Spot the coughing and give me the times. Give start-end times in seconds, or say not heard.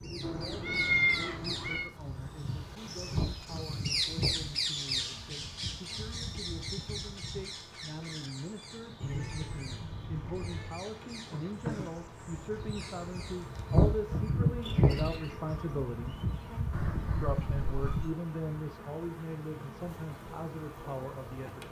not heard.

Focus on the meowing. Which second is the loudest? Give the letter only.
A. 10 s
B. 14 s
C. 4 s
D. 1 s
D.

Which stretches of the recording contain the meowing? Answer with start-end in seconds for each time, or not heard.
0.2-1.9, 9.0-10.8, 16.7-18.1.